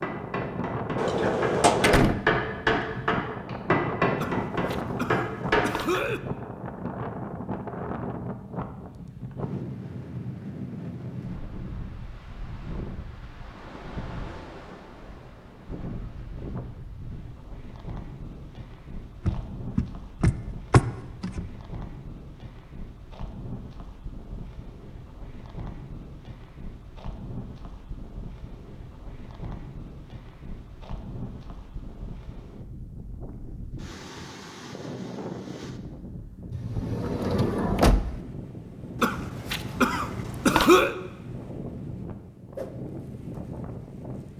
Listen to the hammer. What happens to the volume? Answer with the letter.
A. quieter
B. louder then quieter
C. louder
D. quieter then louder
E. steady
C.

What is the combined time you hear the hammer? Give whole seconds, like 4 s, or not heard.
6 s.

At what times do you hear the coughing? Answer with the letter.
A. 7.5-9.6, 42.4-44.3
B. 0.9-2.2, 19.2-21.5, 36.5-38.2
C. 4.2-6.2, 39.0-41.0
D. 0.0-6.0
C.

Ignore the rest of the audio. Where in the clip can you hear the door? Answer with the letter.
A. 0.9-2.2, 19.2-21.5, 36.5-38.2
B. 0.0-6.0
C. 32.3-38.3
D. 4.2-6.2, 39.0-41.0
A.